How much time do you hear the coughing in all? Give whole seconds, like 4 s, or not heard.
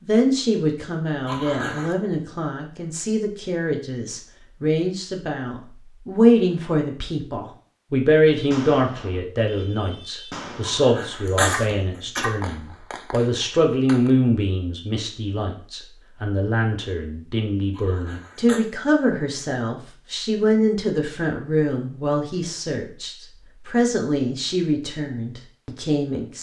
3 s.